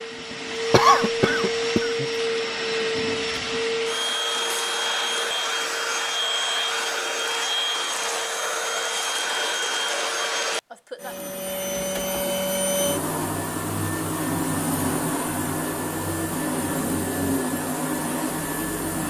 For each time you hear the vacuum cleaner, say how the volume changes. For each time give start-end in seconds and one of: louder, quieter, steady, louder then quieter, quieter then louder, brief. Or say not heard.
0.0-19.0 steady.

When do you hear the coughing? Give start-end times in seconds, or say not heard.
0.7-2.0.